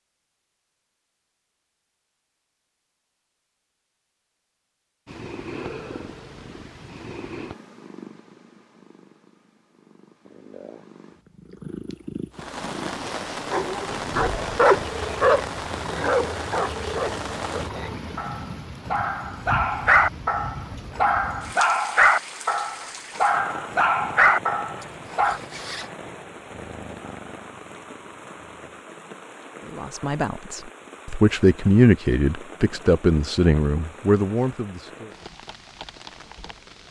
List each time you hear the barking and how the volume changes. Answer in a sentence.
The barking can be heard from 13.5 to 25.4 s, getting quieter then louder.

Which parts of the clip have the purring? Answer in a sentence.
You can hear the purring from 5.0 to 18.1 s and from 26.1 to 28.9 s.